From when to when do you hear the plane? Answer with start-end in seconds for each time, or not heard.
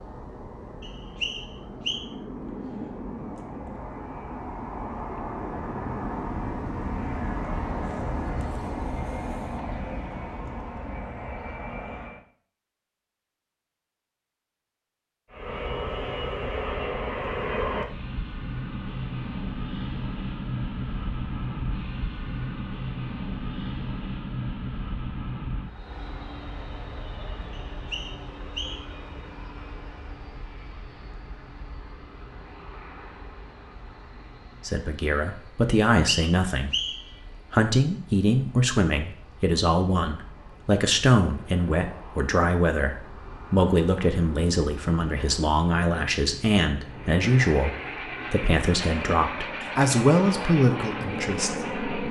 0.0-12.2, 15.3-52.0.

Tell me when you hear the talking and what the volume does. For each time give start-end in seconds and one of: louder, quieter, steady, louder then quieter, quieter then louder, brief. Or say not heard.
34.6-52.0 steady.